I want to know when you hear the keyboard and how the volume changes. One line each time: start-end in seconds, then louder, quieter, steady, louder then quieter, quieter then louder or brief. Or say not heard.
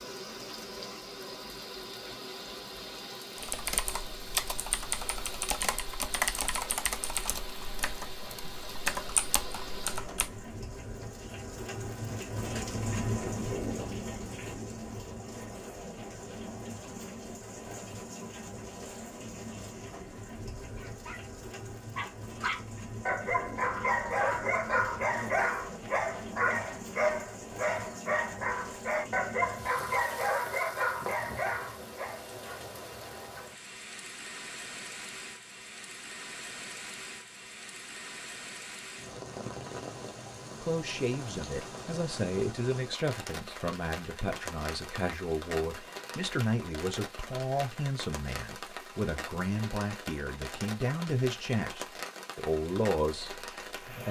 3.4-10.4 quieter then louder.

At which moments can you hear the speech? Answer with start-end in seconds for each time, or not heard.
40.6-54.0.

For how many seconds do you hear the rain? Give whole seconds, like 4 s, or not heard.
54 s.